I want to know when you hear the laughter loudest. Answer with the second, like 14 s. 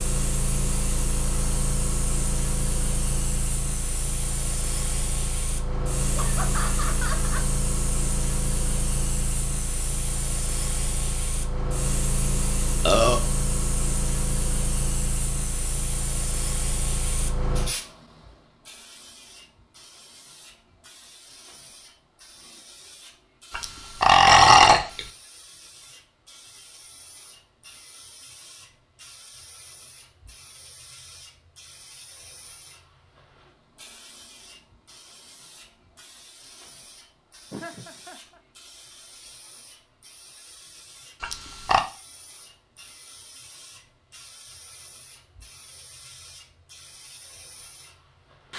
7 s.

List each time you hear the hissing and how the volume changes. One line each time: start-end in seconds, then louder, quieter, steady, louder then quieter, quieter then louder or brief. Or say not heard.
0.0-48.5 quieter.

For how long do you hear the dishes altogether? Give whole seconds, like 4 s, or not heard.
not heard.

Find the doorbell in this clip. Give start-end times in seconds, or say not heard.
not heard.